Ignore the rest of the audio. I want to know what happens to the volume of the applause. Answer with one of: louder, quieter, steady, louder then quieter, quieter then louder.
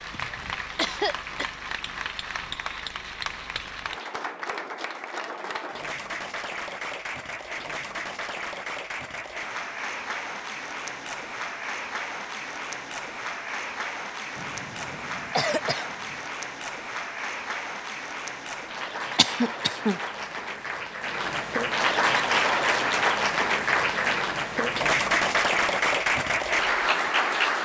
louder.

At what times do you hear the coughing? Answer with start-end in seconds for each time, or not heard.
0.1-1.4, 14.3-16.1, 19.1-19.9.